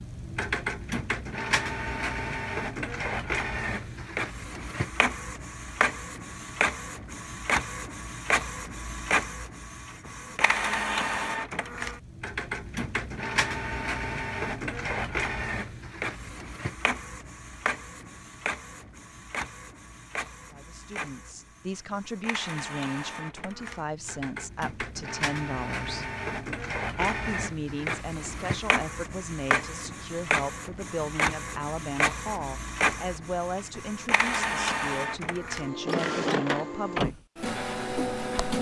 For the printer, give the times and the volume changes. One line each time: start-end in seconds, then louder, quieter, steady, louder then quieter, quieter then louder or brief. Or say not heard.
0.0-38.5 quieter then louder.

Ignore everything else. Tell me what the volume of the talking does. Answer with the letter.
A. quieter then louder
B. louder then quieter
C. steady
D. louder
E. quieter
C.